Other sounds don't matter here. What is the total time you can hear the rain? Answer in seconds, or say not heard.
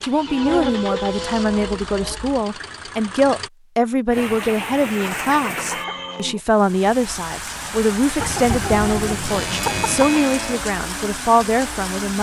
8 s.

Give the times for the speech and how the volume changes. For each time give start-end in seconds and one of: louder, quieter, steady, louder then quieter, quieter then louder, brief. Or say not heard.
0.0-12.1 steady.